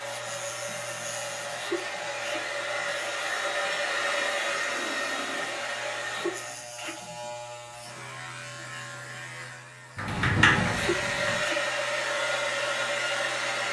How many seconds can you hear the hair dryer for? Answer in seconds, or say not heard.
10 s.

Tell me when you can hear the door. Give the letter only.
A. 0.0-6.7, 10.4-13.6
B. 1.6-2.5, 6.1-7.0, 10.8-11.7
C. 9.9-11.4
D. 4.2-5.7
C.